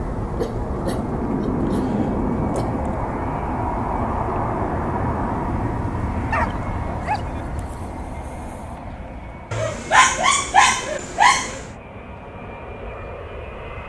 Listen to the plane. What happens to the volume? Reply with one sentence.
The loudness of the plane goes down.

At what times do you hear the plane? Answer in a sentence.
The plane can be heard from 0.0 to 13.8 s.